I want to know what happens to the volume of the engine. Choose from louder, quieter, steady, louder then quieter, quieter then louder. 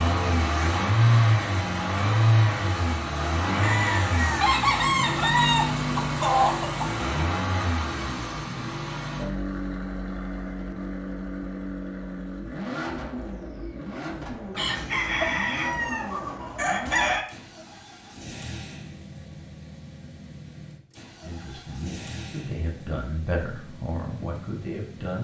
quieter.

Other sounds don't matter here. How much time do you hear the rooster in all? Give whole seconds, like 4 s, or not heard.
6 s.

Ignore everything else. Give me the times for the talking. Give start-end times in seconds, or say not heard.
21.2-25.2.